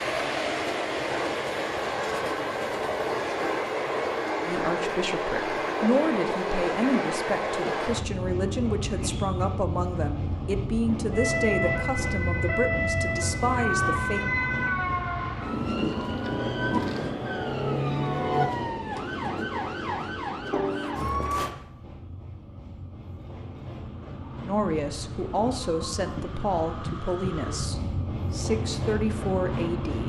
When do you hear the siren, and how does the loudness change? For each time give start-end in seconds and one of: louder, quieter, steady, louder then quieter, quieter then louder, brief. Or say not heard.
11.1-21.6 steady.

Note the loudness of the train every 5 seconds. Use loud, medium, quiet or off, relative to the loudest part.
loud, loud, medium, medium, quiet, medium.